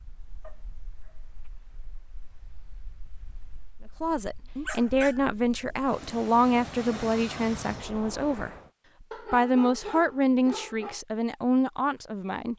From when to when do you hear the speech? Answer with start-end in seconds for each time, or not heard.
4.0-12.5.